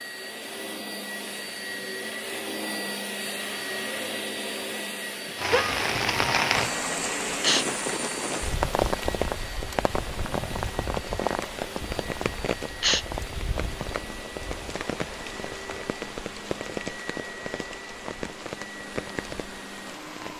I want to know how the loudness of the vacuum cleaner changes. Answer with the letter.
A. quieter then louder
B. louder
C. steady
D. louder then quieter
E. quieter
E.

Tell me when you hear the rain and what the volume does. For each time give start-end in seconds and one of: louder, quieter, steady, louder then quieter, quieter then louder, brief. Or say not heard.
5.3-20.3 quieter.